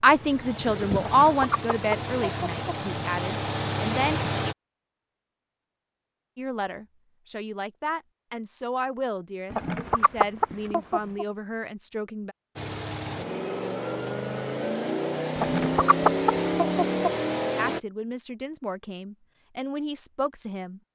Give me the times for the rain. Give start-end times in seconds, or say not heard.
not heard.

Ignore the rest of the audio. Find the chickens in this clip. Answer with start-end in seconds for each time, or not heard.
0.9-2.8, 9.5-11.2, 15.3-17.1.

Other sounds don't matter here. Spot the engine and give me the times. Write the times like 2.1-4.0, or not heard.
0.0-4.5, 12.6-17.8.